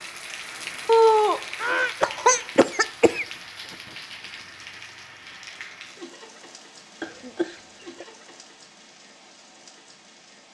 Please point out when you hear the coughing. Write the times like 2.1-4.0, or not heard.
0.8-3.2, 7.0-8.1.